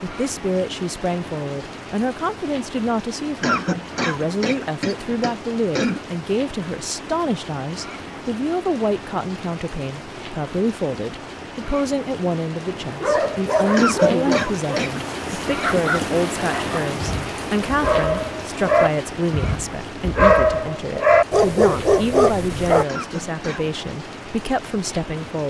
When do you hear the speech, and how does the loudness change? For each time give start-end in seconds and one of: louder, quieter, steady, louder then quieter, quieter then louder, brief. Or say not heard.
0.0-25.4 steady.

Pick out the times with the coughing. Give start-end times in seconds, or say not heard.
3.4-6.0, 13.8-15.0, 22.9-23.7.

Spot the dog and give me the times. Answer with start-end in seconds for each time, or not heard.
12.8-22.9.